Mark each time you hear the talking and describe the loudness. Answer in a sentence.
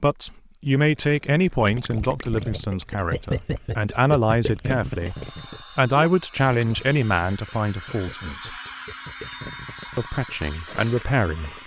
You can hear the talking from 0.0 to 5.2 s, getting quieter then louder; briefly from 5.8 to 8.6 s; and briefly from 9.9 to 11.5 s.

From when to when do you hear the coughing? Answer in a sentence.
The coughing can't be heard in this clip.